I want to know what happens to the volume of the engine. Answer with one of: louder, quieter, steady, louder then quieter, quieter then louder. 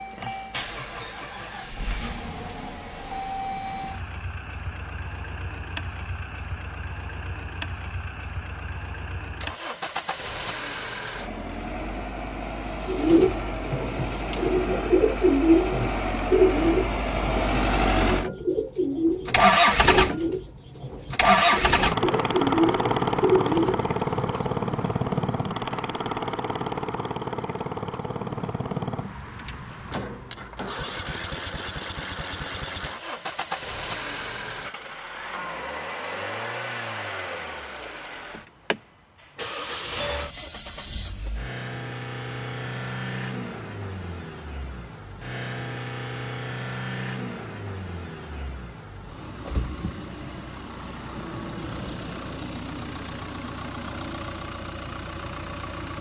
louder then quieter.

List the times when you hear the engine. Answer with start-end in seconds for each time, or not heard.
0.0-55.9.